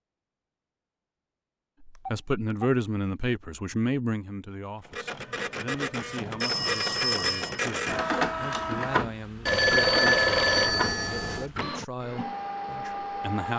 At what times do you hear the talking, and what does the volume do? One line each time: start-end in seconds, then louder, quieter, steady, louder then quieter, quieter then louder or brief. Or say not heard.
1.9-13.5 quieter.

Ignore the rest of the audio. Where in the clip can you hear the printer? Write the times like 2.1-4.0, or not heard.
4.8-13.5.